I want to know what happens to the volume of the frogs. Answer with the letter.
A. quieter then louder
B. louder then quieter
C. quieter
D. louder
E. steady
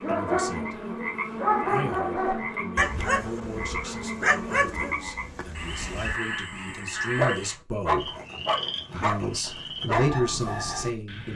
E.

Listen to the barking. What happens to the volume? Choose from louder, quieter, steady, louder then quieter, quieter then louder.
steady.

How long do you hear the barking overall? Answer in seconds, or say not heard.
10 s.